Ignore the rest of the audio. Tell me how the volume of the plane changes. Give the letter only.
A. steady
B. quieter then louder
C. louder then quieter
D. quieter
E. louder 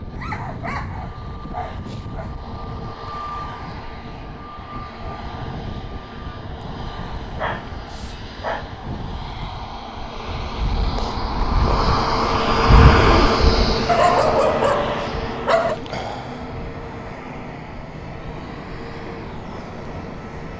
C.